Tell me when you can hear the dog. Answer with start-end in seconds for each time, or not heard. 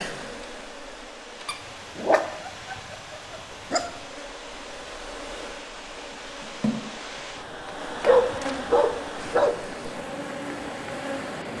1.4-3.9, 8.1-9.6.